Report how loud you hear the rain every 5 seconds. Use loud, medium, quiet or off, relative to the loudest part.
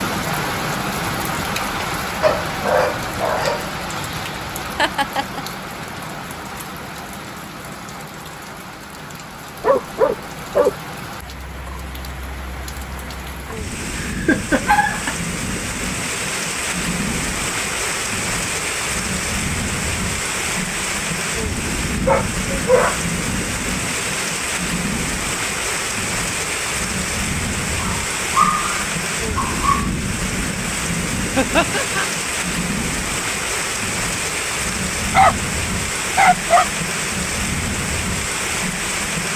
loud, medium, medium, loud, loud, loud, loud, loud.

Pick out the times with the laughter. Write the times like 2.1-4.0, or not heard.
4.8-5.4, 14.0-15.2, 31.4-32.0.